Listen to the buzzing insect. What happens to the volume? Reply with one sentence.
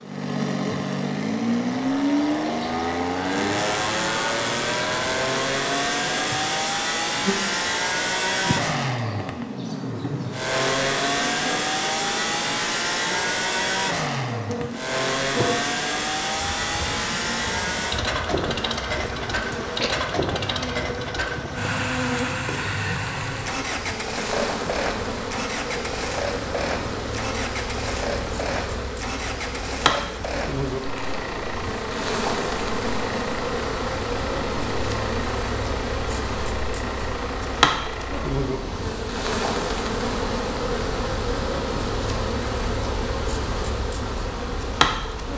The loudness of the buzzing insect goes up.